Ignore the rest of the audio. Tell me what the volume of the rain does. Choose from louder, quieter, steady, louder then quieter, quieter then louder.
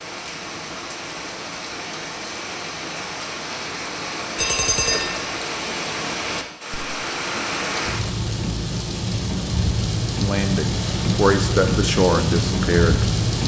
louder.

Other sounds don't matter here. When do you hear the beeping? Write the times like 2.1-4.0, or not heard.
4.3-5.2.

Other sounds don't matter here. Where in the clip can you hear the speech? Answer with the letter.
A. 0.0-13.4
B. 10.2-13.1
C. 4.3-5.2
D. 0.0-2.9
B.